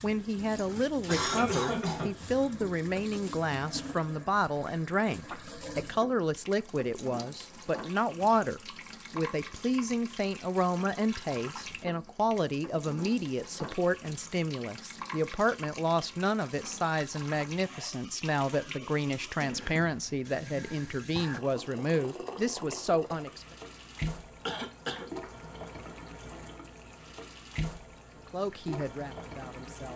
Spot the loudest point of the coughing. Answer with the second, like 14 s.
1 s.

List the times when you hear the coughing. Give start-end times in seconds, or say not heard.
0.6-2.5, 24.4-25.1.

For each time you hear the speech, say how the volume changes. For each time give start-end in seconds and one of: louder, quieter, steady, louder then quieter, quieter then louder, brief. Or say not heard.
0.0-23.4 steady
28.3-29.9 brief.